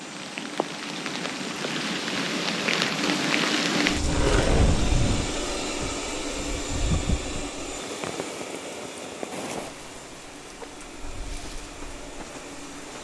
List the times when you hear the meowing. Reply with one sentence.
You can't hear the meowing here.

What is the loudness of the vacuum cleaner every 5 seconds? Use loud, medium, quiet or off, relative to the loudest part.
loud, loud, medium.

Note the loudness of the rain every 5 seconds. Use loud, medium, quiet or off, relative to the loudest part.
loud, medium, quiet.